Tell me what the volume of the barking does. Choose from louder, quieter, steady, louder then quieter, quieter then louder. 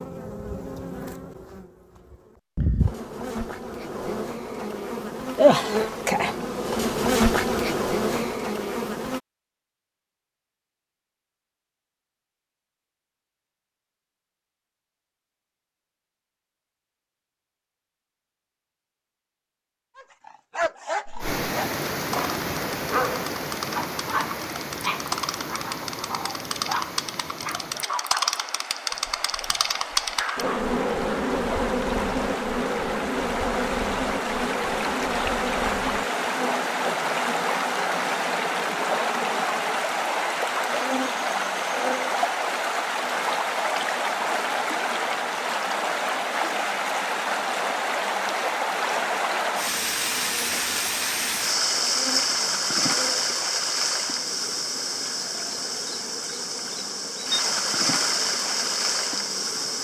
quieter.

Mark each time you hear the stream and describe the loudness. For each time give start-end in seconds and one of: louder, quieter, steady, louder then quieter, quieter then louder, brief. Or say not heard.
21.2-59.7 louder.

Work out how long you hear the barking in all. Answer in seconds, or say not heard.
11 s.